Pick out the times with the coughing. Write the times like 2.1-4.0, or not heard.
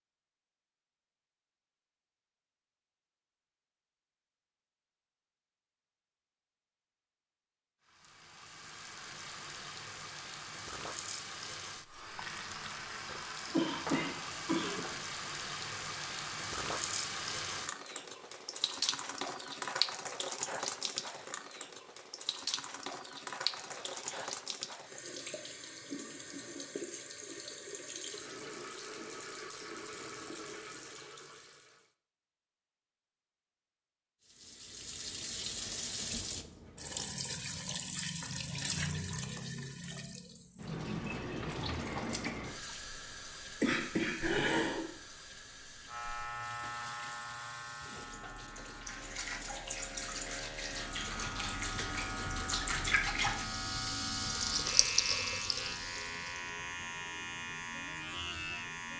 13.4-14.9, 23.4-24.4, 43.6-44.9.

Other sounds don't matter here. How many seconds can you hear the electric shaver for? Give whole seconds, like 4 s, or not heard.
13 s.